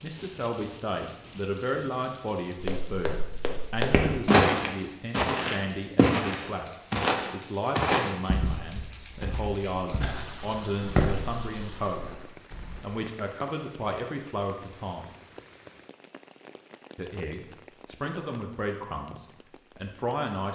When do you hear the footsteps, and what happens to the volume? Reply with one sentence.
You can hear the footsteps from 2.6 to 12.8 s, getting quieter then louder.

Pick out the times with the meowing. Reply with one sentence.
The meowing can't be heard in this clip.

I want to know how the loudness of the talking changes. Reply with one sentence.
The volume of the talking stays about the same.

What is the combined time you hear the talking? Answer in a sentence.
You can hear the talking for 19 seconds altogether.